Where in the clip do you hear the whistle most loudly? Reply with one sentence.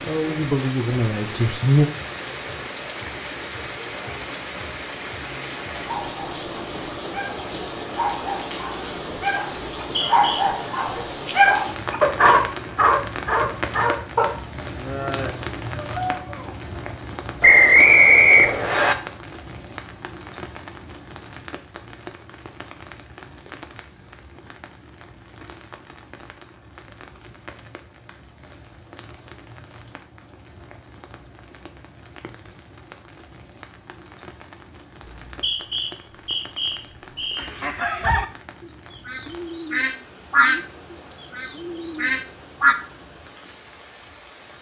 The volume of the whistle peaks at 18 seconds.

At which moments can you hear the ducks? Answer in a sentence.
The ducks can be heard from 37.4 to 38.2 s and from 39.0 to 42.8 s.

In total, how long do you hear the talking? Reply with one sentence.
You can hear the talking for 2 seconds altogether.